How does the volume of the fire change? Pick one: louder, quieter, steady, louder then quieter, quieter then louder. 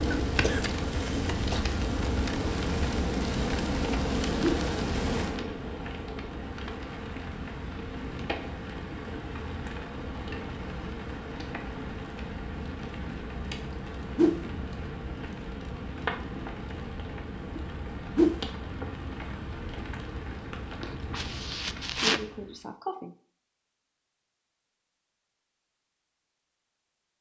quieter.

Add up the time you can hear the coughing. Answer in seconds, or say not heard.
4 s.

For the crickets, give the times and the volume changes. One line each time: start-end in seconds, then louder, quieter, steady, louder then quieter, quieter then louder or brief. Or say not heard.
not heard.